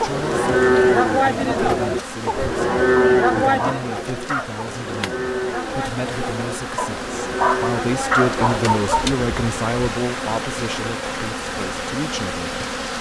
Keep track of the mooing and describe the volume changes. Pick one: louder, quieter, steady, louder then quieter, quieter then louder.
quieter.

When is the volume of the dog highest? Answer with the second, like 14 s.
8 s.